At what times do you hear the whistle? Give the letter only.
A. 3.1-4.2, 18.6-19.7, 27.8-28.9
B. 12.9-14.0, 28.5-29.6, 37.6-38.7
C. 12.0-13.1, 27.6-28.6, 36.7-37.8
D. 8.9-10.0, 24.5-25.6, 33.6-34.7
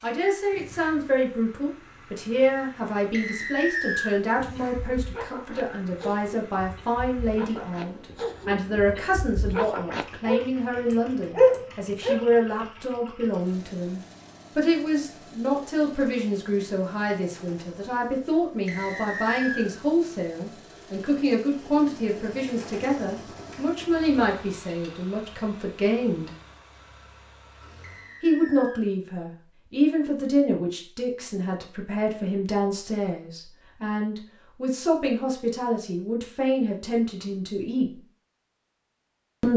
A.